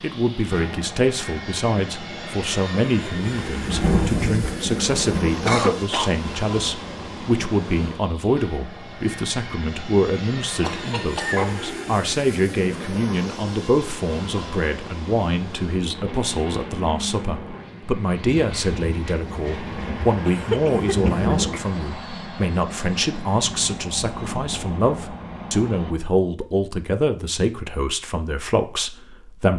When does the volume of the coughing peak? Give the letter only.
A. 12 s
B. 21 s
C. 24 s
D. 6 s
D.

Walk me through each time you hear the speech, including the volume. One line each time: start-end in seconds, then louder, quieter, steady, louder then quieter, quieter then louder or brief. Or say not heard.
0.0-29.5 steady.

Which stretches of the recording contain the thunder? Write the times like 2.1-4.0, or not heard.
3.2-5.5, 18.4-21.6.